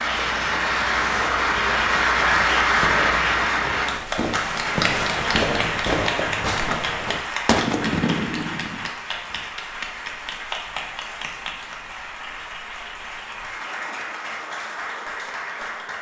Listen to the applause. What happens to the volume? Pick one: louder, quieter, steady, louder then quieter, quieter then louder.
quieter.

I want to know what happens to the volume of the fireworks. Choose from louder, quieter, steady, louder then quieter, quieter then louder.
louder.